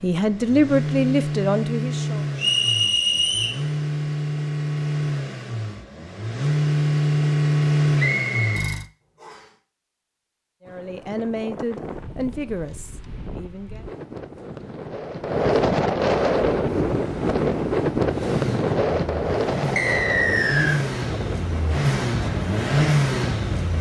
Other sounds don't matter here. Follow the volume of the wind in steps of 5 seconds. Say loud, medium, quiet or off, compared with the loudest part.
off, off, quiet, loud, medium.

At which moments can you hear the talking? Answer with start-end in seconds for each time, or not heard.
0.0-2.2, 10.7-13.8.